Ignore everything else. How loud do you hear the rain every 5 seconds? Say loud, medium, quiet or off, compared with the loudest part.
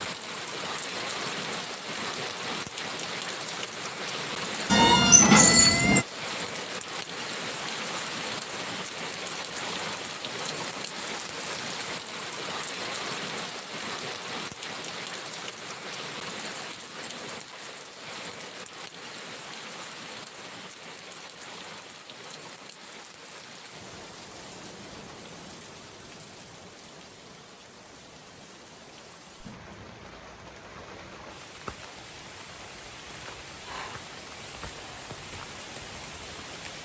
loud, loud, loud, medium, medium, quiet, medium, medium.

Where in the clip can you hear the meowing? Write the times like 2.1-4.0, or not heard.
4.7-6.0.